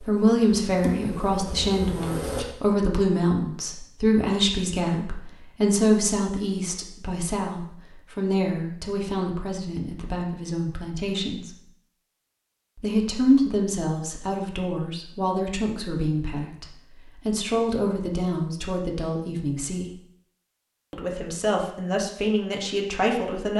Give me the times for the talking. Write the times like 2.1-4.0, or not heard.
0.0-11.7, 12.8-19.9, 20.9-23.5.